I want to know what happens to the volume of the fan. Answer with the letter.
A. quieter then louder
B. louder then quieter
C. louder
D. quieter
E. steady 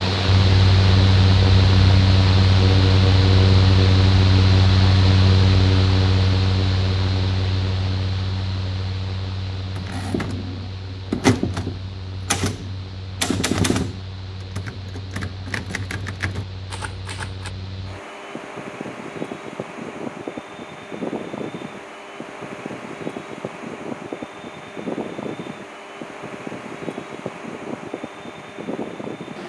A.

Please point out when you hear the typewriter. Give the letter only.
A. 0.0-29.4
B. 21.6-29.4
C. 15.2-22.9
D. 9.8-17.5
D.